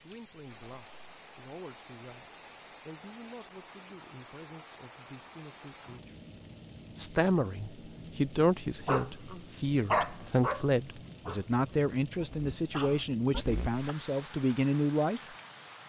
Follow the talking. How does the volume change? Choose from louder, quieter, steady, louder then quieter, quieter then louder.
louder.